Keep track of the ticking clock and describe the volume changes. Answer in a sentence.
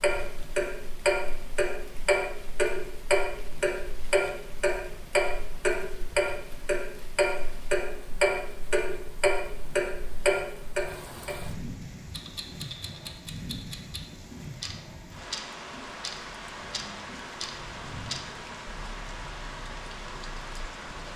The loudness of the ticking clock goes down.